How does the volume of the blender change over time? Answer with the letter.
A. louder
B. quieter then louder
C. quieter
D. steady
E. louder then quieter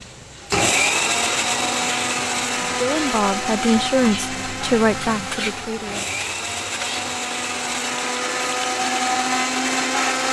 B.